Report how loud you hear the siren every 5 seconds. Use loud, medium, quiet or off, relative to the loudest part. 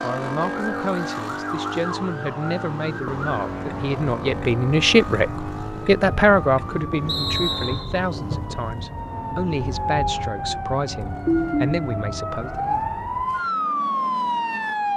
medium, medium, loud.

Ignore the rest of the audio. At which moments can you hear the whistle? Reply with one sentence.
You can hear the whistle from 7.0 to 8.0 s.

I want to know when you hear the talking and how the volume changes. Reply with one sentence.
You can hear the talking from 0.0 to 12.8 s, getting louder then quieter.